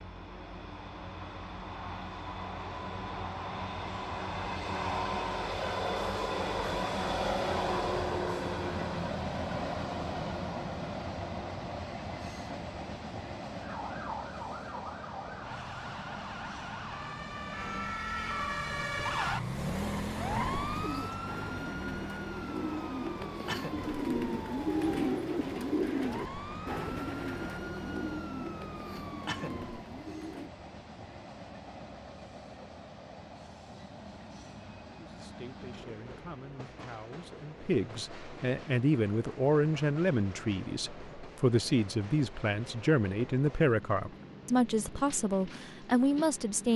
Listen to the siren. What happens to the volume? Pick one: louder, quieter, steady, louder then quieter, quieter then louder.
louder then quieter.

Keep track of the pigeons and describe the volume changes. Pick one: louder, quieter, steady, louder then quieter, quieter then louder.
louder then quieter.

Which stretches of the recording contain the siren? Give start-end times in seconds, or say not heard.
13.6-29.9.